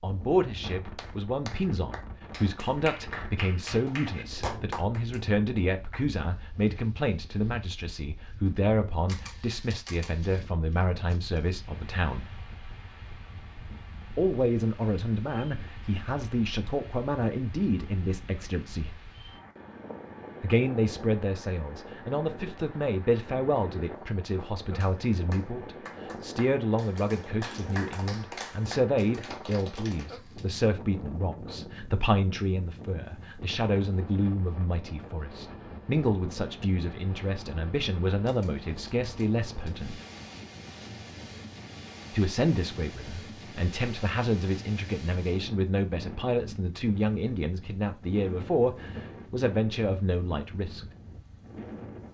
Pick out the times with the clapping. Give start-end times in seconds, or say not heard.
0.9-6.0, 24.8-30.1.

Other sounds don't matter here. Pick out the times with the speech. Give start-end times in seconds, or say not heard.
0.0-12.2, 14.2-19.0, 20.4-40.0, 42.1-50.9.